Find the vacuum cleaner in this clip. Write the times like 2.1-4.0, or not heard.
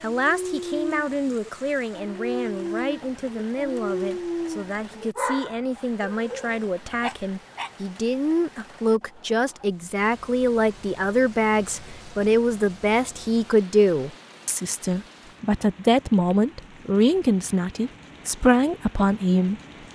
not heard.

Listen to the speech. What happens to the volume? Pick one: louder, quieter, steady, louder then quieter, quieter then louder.
louder.